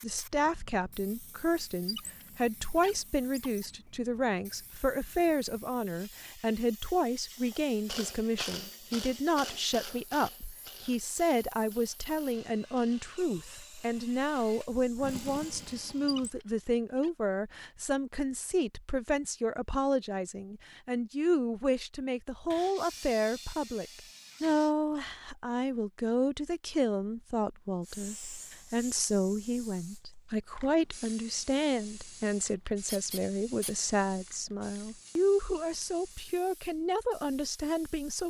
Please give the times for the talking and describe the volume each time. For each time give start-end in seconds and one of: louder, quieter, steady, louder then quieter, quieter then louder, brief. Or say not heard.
0.0-38.2 steady.